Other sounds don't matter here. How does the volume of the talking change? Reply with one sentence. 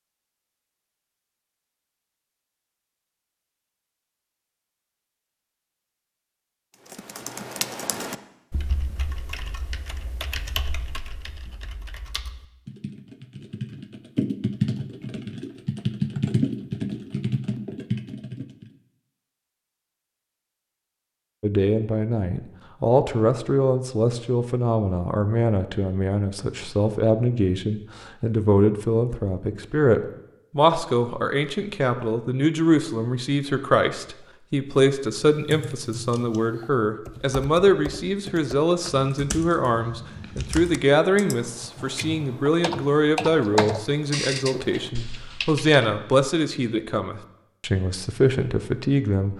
The volume of the talking stays about the same.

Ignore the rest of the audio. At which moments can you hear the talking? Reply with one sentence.
You can hear the talking from 21.4 to 49.3 s.